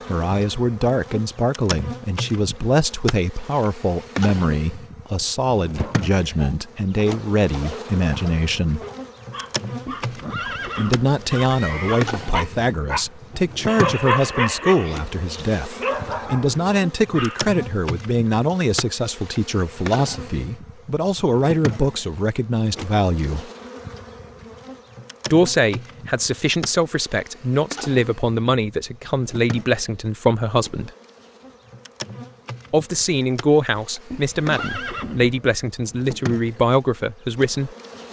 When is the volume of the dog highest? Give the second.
14 s.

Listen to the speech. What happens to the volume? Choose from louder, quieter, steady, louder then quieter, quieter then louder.
steady.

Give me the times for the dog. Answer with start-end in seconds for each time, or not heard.
5.8-17.6.